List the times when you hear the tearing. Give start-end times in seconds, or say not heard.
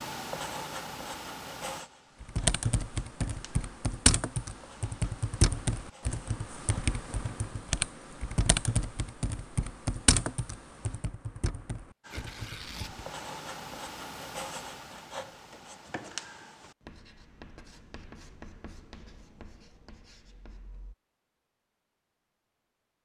12.1-12.9.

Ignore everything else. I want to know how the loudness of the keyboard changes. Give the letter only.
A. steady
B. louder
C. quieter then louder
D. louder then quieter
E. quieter
E.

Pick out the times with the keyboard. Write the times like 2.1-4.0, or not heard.
2.2-13.1.